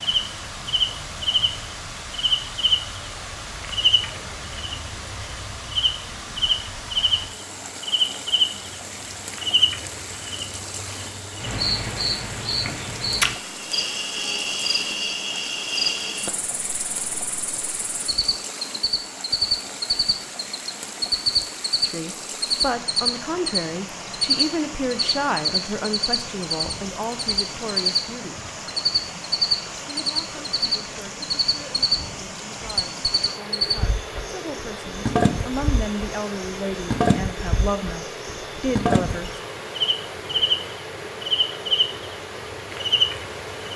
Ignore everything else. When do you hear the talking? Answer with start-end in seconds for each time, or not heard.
21.8-28.4, 29.9-39.3.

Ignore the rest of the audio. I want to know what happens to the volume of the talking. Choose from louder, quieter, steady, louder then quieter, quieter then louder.
quieter then louder.